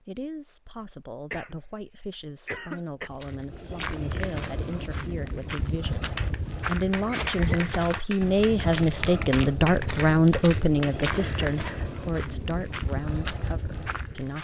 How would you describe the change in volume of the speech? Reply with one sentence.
The loudness of the speech goes up, then down.